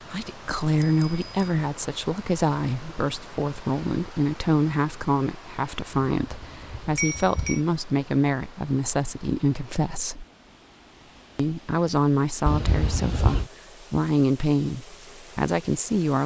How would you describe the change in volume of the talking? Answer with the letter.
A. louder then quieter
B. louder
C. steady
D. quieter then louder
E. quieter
C.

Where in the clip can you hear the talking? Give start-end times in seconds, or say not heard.
0.1-10.2, 11.3-16.2.